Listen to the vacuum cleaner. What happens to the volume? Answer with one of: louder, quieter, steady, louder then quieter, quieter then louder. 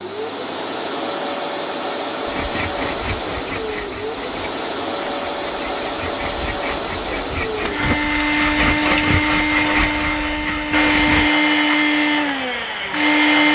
louder.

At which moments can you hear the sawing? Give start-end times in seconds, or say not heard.
2.2-11.3.